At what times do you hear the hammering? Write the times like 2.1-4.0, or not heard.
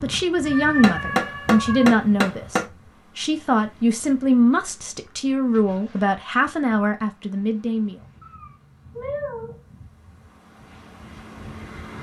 0.8-2.6.